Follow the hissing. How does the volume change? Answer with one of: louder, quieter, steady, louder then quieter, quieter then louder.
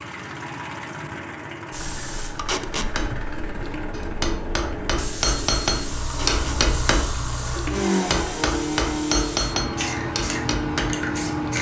louder.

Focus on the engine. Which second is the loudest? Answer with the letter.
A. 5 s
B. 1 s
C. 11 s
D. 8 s
D.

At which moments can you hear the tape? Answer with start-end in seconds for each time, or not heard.
2.4-2.9, 6.0-6.6.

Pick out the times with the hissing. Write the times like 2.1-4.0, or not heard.
1.7-11.5.